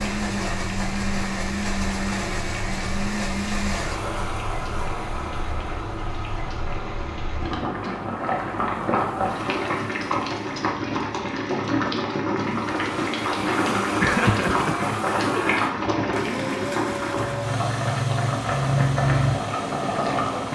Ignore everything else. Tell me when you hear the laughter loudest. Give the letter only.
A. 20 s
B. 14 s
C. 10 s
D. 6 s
B.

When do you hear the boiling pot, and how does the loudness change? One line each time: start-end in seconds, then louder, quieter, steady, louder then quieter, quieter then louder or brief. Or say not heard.
0.0-20.5 louder.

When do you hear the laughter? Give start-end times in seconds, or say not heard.
14.0-15.6.